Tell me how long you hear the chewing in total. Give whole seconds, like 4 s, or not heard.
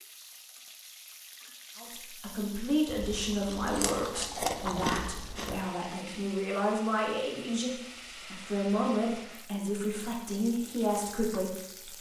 3 s.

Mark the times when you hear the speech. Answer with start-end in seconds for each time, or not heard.
1.8-11.9.